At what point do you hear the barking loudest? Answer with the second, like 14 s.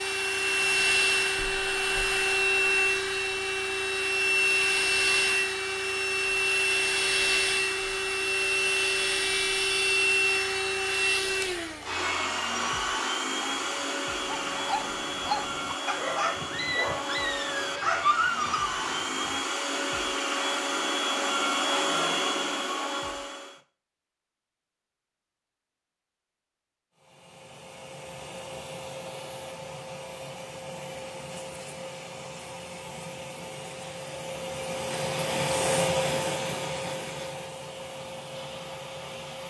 18 s.